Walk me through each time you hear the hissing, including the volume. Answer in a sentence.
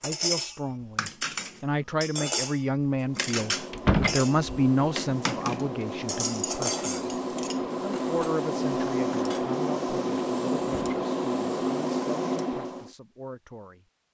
The hissing can be heard from 3.0 to 12.9 s, getting louder.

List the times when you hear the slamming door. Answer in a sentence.
You can hear the slamming door from 3.7 to 4.2 s and from 10.6 to 11.1 s.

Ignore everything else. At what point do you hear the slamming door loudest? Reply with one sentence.
The volume of the slamming door peaks at 4 seconds.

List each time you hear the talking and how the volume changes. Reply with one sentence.
You can hear the talking from 0.0 to 6.8 s, getting louder then quieter; and from 7.8 to 13.8 s, getting quieter.